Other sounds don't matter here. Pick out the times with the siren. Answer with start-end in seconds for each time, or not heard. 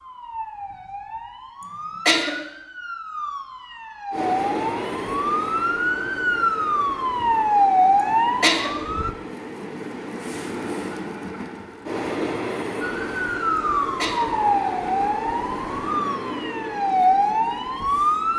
0.0-9.1, 12.8-18.3.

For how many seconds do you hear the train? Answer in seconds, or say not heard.
14 s.